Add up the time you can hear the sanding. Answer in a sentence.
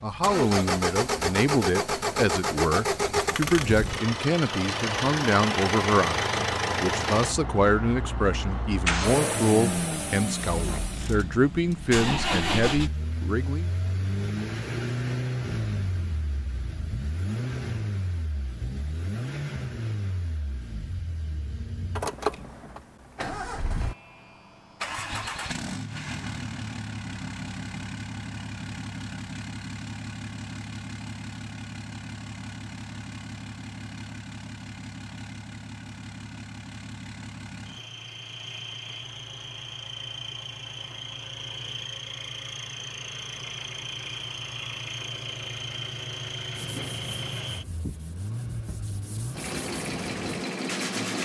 You can hear the sanding for 5 seconds altogether.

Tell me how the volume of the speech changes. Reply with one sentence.
The volume of the speech stays about the same.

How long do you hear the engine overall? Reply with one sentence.
The engine can be heard for 51 seconds in total.